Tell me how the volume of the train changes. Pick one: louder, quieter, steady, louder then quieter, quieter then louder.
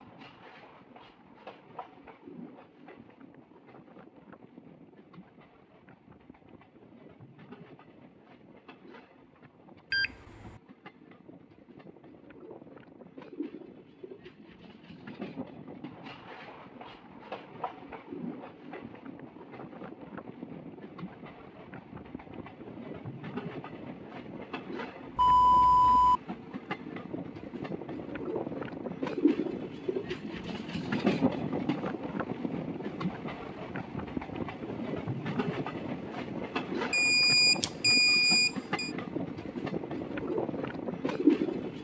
louder.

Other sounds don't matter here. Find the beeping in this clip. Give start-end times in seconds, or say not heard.
9.9-10.5, 25.1-26.2, 36.9-38.9.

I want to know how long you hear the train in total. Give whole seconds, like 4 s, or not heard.
42 s.